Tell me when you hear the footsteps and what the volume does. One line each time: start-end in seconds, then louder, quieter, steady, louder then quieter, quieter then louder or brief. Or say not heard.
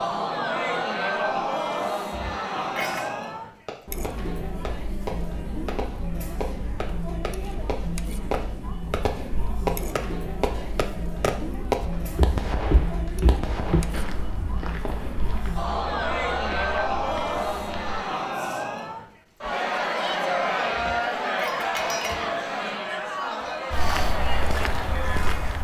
11.8-18.1 quieter
23.7-25.6 brief.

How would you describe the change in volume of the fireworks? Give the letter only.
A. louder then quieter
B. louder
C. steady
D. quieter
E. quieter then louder
A.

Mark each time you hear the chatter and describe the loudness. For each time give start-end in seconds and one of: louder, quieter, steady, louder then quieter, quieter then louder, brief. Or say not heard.
0.0-25.6 quieter then louder.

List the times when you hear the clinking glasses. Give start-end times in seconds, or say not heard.
2.1-3.0, 20.8-22.4.